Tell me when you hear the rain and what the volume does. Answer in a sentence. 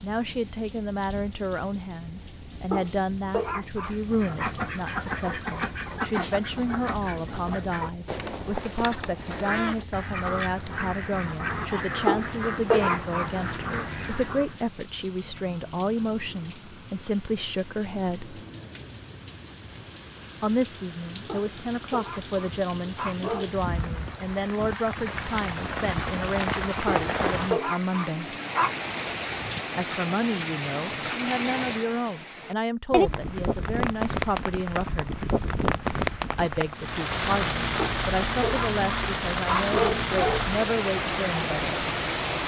The rain can be heard from 0.0 to 42.4 s, getting louder.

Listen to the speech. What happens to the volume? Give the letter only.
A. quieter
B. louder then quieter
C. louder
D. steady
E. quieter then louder
D.